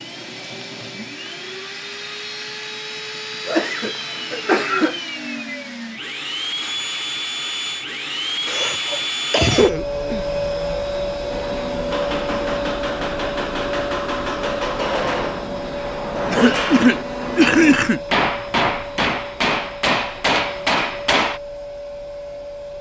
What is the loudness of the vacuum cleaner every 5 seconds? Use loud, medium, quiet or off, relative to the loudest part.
medium, loud, loud, medium, medium.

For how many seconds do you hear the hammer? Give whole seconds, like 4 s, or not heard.
10 s.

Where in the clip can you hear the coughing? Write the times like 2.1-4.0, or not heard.
3.5-5.0, 8.4-10.2, 16.3-18.0.